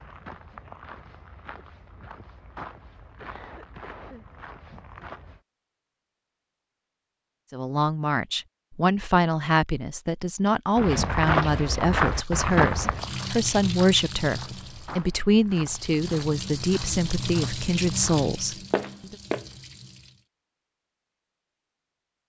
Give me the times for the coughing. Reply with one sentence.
The coughing can be heard from 3.0 to 4.2 s.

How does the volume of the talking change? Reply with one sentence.
The volume of the talking stays about the same.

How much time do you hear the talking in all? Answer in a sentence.
The talking can be heard for 12 seconds in total.